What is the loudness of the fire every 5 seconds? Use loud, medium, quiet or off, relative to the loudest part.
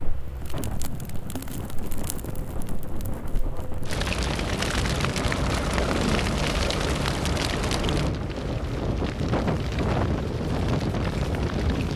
medium, loud, medium.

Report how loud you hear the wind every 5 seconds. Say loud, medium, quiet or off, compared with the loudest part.
medium, loud, loud.